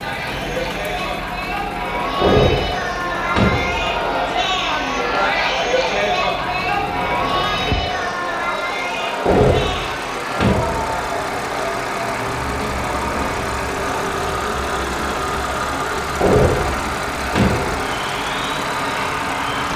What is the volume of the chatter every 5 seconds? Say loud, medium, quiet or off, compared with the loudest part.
loud, loud, medium, medium.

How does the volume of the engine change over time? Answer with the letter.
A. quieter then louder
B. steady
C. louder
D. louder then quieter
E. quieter
C.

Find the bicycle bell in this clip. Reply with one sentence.
The bicycle bell can't be heard in this clip.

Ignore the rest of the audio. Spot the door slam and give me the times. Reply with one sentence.
You can hear the door slam from 2.2 to 4.0 s, from 9.2 to 11.0 s and from 16.2 to 17.9 s.